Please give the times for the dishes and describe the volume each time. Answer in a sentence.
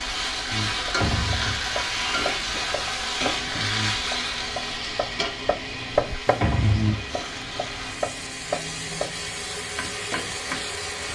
The dishes can't be heard in this clip.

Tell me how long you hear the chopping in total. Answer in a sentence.
You can hear the chopping for 10 seconds altogether.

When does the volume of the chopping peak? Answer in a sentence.
The loudest moment of the chopping is at 6 seconds.